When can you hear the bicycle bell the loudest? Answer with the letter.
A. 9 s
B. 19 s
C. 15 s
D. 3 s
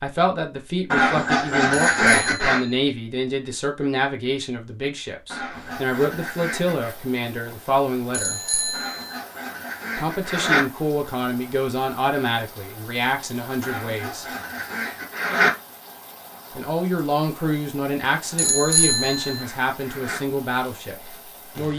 B.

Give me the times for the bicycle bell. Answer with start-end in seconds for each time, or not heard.
1.8-2.8, 8.1-9.2, 18.4-19.4.